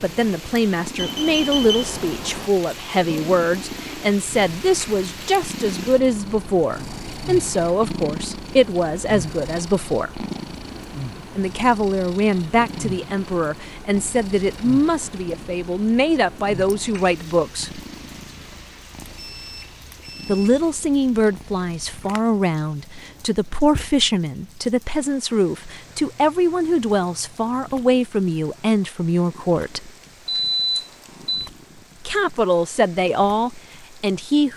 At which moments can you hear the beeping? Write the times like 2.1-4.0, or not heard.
0.9-2.5, 19.2-20.6, 30.2-31.5.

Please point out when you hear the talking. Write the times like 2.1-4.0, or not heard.
0.0-10.2, 11.3-17.8, 20.2-29.9, 32.0-34.5.